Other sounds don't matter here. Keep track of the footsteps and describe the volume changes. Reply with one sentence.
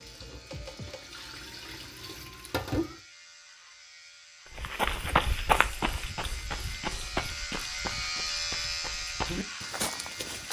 The loudness of the footsteps goes down, then up.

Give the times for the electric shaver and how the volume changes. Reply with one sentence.
The electric shaver can be heard from 0.0 to 10.4 s, getting louder.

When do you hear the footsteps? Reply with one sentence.
The footsteps can be heard from 4.5 to 10.4 s.